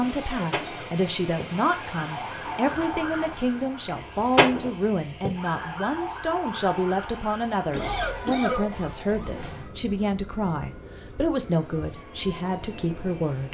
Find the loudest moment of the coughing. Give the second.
8 s.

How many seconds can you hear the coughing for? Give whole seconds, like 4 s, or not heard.
2 s.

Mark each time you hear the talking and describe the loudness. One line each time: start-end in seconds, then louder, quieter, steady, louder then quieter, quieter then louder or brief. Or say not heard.
0.0-13.4 steady.